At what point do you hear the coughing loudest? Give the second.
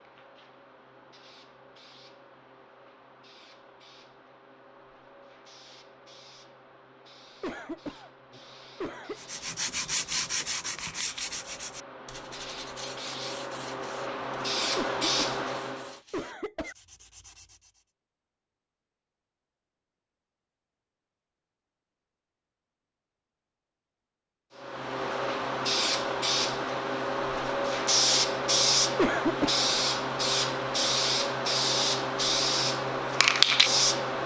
29 s.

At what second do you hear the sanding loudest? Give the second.
10 s.